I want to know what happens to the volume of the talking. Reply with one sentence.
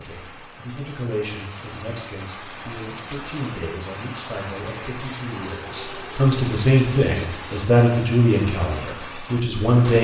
The volume of the talking goes up.